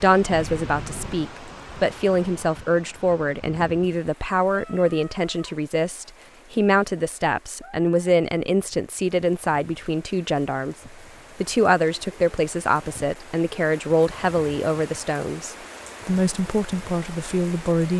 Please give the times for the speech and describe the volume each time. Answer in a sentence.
You can hear the speech from 0.0 to 17.9 s, at a steady volume.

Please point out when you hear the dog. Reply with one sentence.
The dog can't be heard in this clip.